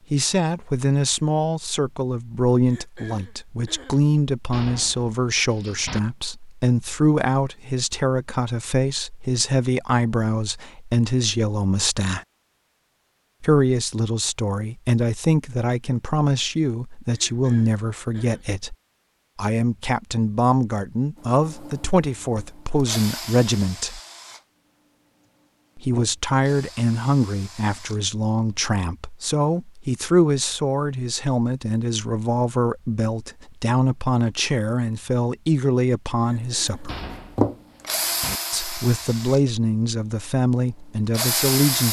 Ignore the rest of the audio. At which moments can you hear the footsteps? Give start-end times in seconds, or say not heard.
not heard.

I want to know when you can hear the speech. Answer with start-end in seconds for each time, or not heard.
0.1-12.2, 13.4-18.8, 19.4-24.0, 25.8-37.0, 38.5-41.8.